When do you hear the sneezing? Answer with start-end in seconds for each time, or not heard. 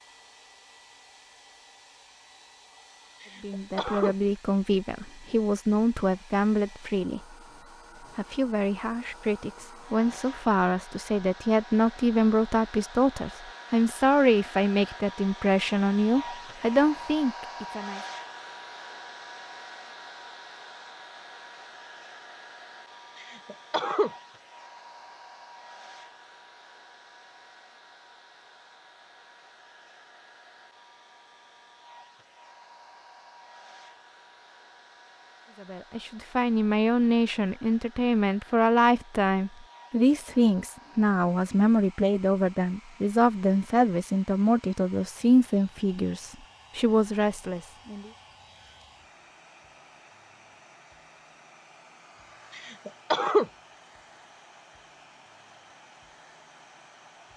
3.2-4.2, 23.1-24.1, 52.5-53.5.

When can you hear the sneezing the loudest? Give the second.
53 s.